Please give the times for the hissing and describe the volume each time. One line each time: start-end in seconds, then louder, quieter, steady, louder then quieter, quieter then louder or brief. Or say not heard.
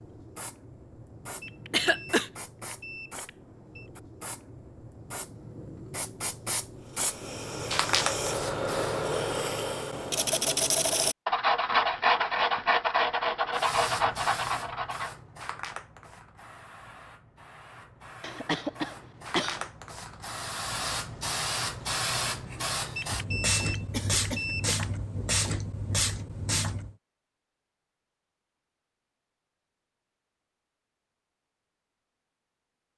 0.0-9.1 louder
13.6-26.9 quieter then louder.